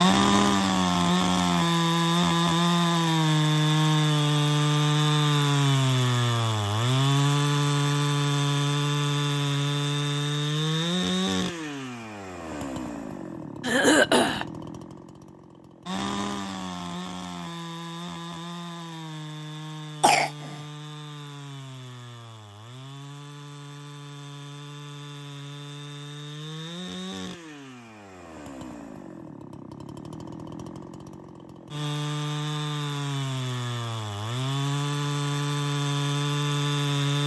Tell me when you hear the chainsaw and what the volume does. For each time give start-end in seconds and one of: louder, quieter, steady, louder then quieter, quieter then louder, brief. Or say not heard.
0.0-37.2 quieter then louder.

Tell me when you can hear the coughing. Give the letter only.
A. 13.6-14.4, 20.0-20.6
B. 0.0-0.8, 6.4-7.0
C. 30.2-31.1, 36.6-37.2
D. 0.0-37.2
A.